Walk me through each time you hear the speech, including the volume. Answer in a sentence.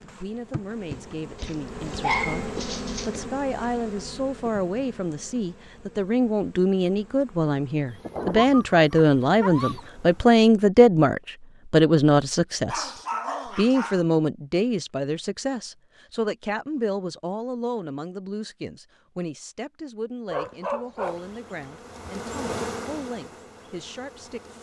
You can hear the speech from 0.0 to 24.5 s, getting louder then quieter.